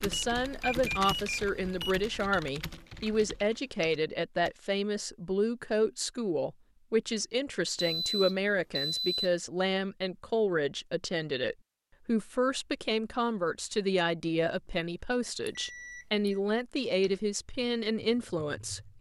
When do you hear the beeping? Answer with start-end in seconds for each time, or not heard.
0.1-2.4, 7.8-9.3, 15.4-16.4.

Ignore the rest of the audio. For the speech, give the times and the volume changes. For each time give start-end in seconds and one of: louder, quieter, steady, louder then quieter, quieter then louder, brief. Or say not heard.
0.0-18.9 steady.